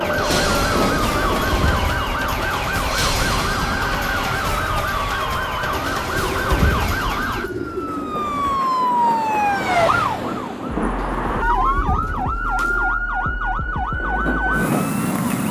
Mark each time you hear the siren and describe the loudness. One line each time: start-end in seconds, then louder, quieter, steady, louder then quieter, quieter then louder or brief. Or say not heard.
0.0-15.4 steady.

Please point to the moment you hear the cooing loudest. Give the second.
7 s.